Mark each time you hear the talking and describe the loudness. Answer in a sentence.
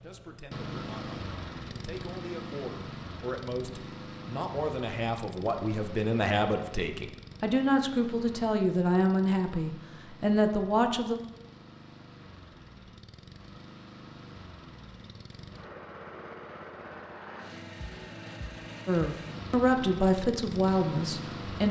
You can hear the talking from 0.0 to 11.2 s, getting louder; and briefly from 18.9 to 21.6 s.